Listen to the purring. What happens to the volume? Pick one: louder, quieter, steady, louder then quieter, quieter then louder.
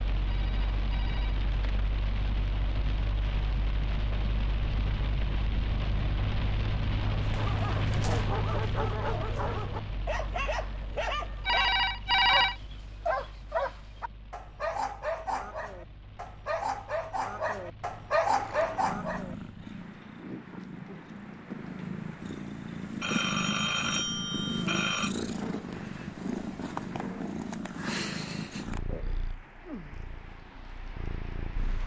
louder then quieter.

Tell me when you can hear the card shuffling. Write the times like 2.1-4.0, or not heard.
not heard.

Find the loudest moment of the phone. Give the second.
12 s.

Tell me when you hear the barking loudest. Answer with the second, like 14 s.
18 s.